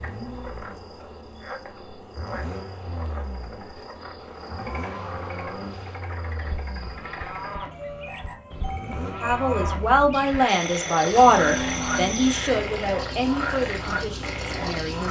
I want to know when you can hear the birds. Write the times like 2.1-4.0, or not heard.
not heard.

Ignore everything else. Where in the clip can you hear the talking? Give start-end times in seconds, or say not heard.
9.2-15.0.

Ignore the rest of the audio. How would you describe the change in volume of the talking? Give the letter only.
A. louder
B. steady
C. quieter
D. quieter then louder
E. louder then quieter
C.